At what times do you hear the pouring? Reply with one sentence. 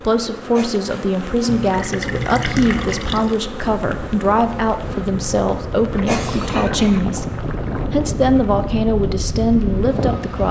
The pouring can be heard from 1.4 to 3.4 s and from 5.8 to 7.8 s.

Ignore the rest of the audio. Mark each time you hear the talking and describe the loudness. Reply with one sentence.
You can hear the talking from 0.0 to 10.4 s, at a steady volume.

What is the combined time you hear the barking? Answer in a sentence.
You can't hear the barking here.